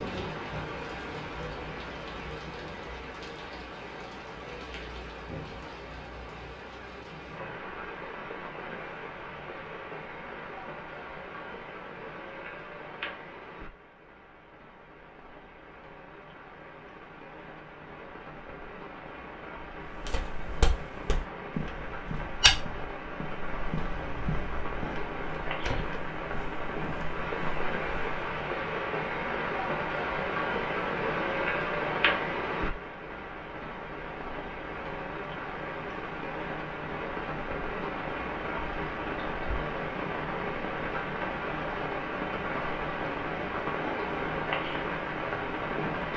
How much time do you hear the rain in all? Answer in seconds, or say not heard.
46 s.